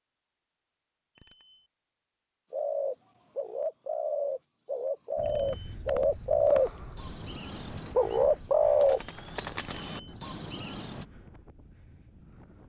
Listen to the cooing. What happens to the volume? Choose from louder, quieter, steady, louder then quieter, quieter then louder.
louder then quieter.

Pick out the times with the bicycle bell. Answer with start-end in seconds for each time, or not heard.
1.1-1.6, 5.2-5.8, 9.6-10.2.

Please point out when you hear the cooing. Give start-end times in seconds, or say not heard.
2.5-11.1.